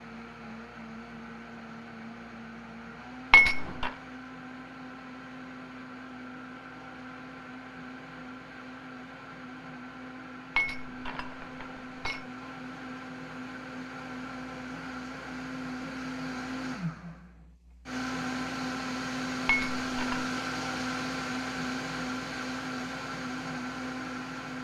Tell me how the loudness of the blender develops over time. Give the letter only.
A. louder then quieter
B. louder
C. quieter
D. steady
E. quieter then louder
B.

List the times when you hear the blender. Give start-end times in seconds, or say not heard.
0.0-24.5.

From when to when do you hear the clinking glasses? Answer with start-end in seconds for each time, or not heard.
3.3-3.9, 10.6-12.2, 19.4-20.2.